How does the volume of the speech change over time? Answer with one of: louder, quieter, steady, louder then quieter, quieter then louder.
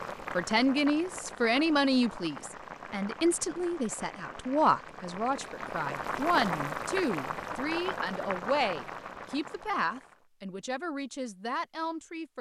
quieter.